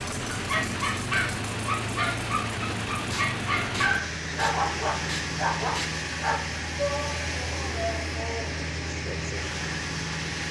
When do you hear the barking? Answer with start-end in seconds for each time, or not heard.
0.3-6.4.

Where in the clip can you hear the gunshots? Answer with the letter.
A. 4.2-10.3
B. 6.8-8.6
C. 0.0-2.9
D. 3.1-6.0
D.